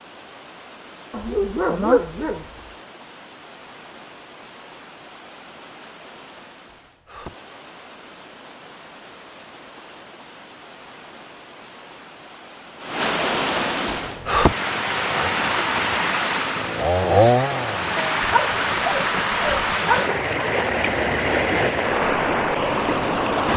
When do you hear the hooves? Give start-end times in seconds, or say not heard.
not heard.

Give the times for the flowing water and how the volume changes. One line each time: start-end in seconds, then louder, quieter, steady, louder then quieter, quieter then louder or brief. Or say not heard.
0.0-23.5 louder.